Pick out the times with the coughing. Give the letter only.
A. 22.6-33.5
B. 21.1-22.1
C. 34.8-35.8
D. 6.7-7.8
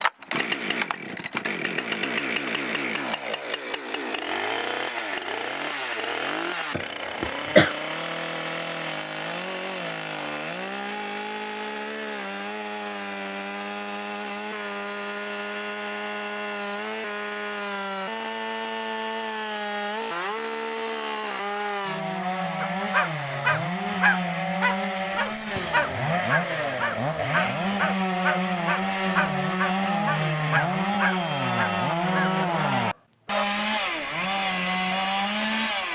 D.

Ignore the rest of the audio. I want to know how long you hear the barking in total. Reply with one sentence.
You can hear the barking for 11 seconds altogether.